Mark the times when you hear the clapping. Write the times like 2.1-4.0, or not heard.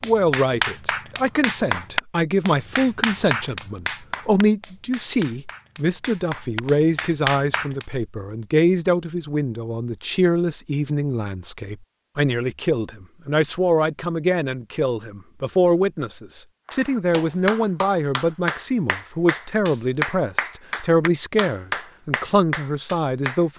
0.0-7.8, 16.6-23.4.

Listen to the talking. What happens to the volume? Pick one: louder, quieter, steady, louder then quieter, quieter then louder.
steady.